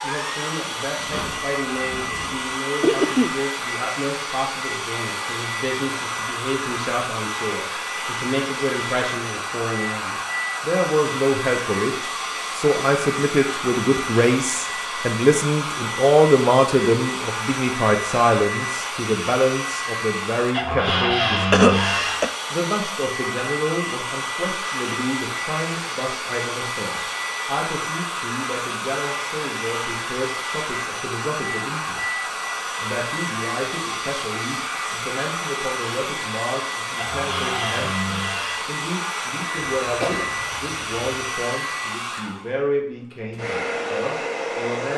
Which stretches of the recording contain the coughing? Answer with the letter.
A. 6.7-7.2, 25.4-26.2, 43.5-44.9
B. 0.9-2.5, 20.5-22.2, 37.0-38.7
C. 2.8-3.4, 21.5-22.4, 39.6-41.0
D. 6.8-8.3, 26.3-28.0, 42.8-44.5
C.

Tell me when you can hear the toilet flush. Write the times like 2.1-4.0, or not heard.
not heard.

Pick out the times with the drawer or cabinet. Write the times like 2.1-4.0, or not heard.
0.9-2.5, 20.5-22.2, 37.0-38.7.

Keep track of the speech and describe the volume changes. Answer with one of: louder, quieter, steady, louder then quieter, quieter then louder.
louder then quieter.